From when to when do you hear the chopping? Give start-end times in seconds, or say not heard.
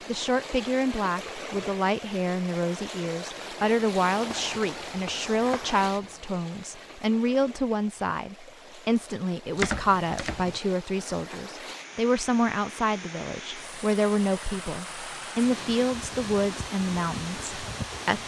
4.2-6.3, 9.6-10.6.